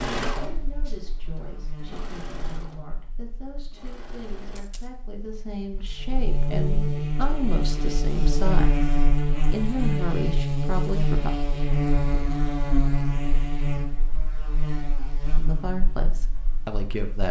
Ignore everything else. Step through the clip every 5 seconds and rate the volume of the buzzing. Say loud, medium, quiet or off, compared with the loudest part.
quiet, loud, loud, quiet.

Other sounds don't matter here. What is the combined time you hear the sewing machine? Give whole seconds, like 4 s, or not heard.
5 s.